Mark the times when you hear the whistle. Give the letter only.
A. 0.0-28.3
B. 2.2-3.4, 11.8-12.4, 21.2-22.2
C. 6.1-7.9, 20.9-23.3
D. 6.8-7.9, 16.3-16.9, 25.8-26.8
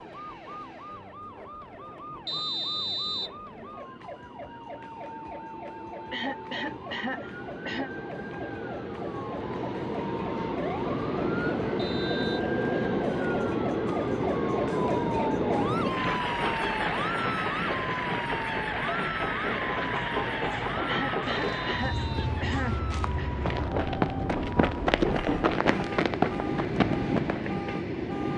B.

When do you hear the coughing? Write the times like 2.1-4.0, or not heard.
6.1-7.9, 20.9-23.3.